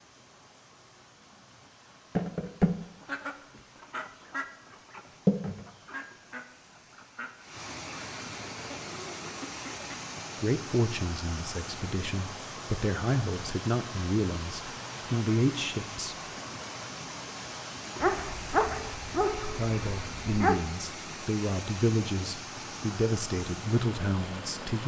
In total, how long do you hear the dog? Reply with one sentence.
The dog can be heard for 3 seconds in total.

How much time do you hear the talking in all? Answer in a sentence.
The talking can be heard for 11 seconds in total.